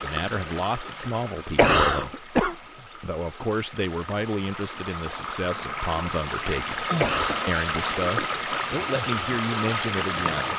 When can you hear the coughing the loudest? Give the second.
2 s.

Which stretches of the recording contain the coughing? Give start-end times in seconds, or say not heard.
1.6-2.5, 7.0-7.5.